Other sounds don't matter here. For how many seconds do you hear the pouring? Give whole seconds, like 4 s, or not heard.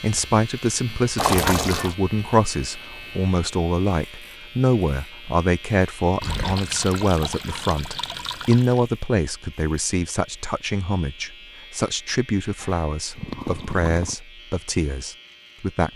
5 s.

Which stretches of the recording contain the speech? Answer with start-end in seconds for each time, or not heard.
0.0-15.9.